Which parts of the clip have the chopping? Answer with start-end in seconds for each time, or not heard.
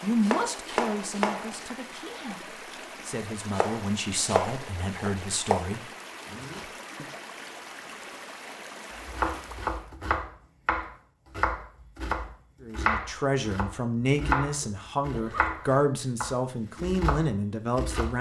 0.0-1.8, 3.5-5.6, 8.9-18.1.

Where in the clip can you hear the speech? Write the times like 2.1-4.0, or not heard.
0.0-5.8, 12.6-18.1.